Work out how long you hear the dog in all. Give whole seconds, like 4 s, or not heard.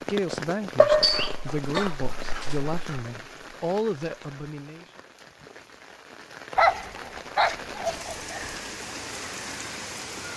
4 s.